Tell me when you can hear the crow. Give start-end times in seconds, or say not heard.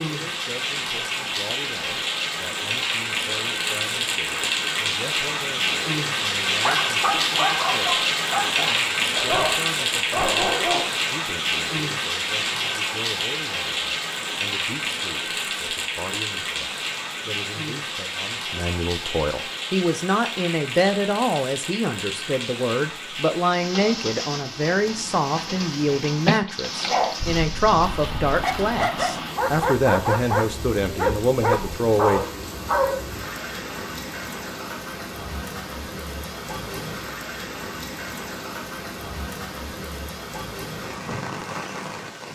not heard.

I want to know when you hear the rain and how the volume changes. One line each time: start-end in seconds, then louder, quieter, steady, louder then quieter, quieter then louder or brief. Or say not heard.
0.0-42.3 quieter.